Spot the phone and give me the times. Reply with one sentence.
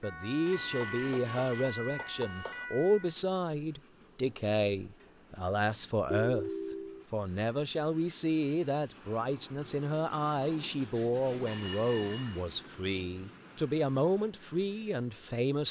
The phone can be heard from 0.5 to 2.6 s, from 6.1 to 7.0 s and from 11.4 to 12.4 s.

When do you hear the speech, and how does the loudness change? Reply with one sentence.
The speech can be heard from 0.0 to 15.6 s, at a steady volume.